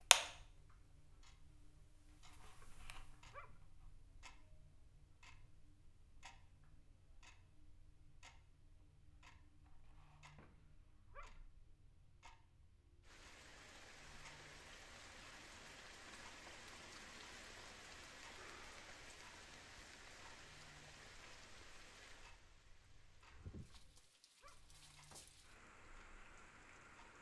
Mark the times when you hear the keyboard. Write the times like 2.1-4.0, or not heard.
not heard.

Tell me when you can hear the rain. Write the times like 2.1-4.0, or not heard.
13.0-27.1.